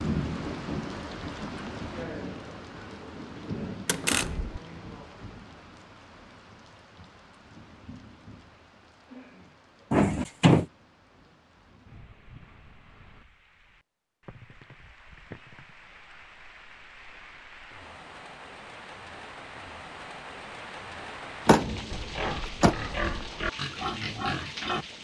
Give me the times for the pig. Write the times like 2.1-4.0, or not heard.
21.9-24.9.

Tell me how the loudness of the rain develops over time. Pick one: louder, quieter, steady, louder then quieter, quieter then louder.
quieter then louder.